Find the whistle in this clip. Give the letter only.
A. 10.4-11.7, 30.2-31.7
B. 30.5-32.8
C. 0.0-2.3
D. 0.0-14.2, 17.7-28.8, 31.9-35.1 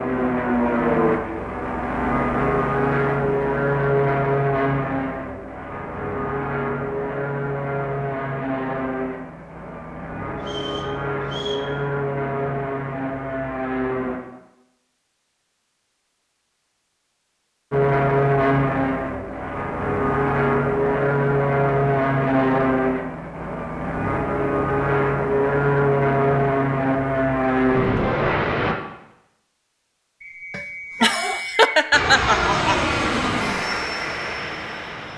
A.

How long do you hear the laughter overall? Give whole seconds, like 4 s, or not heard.
2 s.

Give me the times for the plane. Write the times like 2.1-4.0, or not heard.
0.0-14.2, 17.7-28.8, 31.9-35.1.